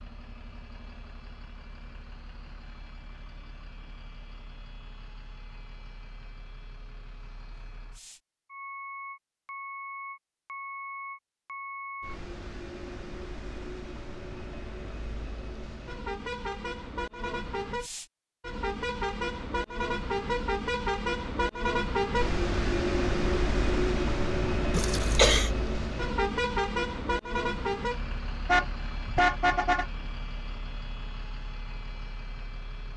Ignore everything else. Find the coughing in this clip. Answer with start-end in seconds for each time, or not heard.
24.7-25.5.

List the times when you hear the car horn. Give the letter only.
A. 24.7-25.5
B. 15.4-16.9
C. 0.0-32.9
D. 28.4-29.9
D.